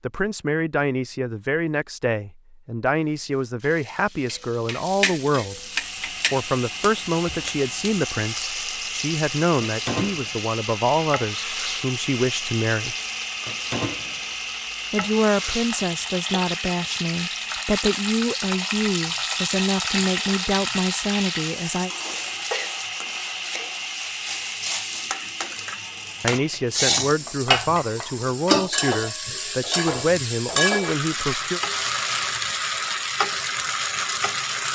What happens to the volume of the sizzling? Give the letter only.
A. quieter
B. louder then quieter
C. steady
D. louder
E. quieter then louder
D.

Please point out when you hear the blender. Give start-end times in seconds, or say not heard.
5.5-26.9.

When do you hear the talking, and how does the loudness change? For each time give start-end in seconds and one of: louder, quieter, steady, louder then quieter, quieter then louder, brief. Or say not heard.
0.0-5.6 steady
6.3-12.9 steady
14.9-21.9 steady
26.2-31.6 steady.